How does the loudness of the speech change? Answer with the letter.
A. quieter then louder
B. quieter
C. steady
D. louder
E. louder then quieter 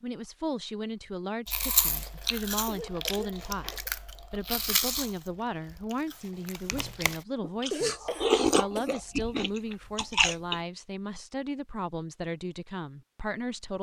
C.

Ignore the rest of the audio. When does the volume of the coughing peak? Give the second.
8 s.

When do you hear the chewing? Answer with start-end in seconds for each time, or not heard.
1.4-10.6.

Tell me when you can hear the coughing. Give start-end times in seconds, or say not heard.
2.6-3.9, 7.7-9.2.